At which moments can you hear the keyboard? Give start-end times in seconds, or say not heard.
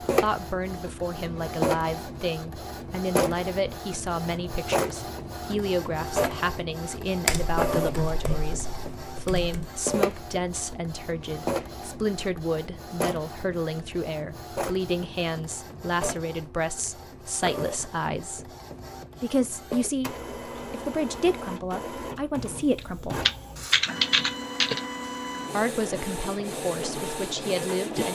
7.2-9.7, 22.8-24.8.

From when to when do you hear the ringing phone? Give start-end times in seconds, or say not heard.
not heard.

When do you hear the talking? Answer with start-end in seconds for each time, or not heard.
0.0-18.4, 19.2-23.2, 25.5-28.0.